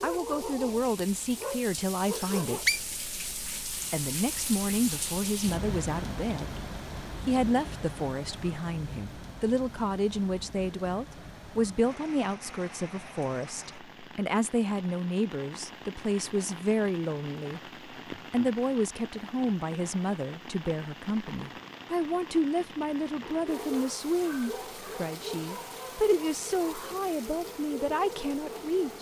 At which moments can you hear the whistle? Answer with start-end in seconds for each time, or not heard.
2.0-2.8.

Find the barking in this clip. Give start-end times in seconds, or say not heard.
0.0-2.9, 23.2-28.9.